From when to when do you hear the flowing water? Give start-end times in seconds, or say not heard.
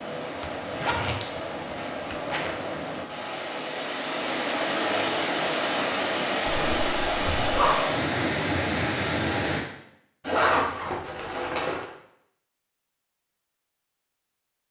0.0-9.7.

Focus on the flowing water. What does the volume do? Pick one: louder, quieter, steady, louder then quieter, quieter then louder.
louder.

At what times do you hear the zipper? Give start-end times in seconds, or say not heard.
0.4-2.5, 6.5-7.8, 10.2-11.8.